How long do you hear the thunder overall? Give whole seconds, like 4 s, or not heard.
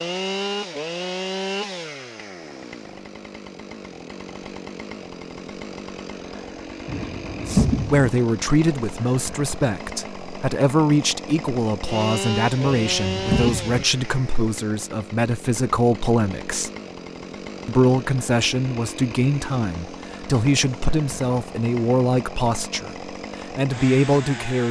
2 s.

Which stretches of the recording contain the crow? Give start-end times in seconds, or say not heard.
not heard.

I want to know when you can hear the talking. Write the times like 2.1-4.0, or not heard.
7.5-16.7, 17.6-24.6.